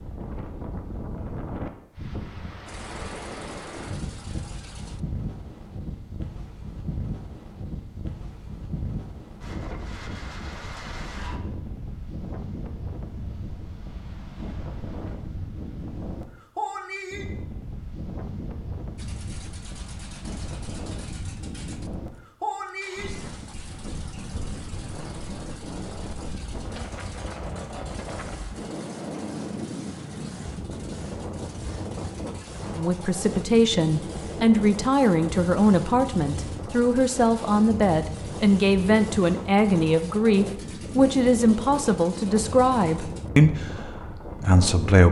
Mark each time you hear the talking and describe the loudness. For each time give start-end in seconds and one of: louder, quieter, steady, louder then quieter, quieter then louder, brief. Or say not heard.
32.8-45.0 steady.